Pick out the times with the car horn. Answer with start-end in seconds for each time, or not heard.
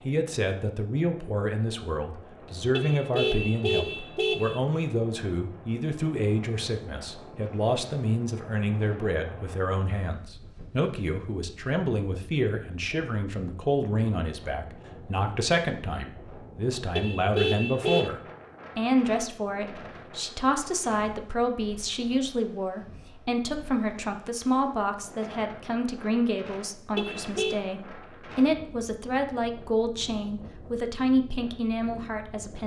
2.7-4.6, 16.9-18.1, 26.9-27.6.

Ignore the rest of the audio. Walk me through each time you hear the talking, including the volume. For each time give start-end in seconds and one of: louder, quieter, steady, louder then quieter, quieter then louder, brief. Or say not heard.
0.1-32.6 steady.